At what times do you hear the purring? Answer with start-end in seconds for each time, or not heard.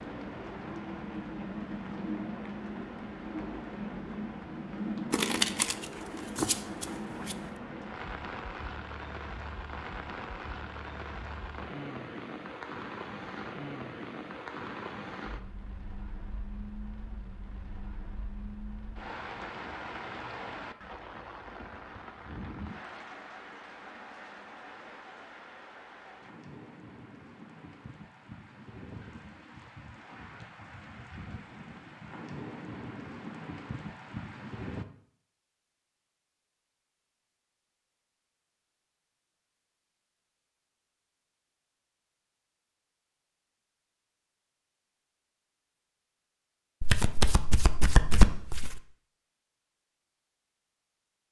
not heard.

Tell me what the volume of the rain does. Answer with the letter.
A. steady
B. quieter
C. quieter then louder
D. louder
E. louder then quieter
B.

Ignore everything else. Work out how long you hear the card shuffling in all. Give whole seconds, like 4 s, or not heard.
4 s.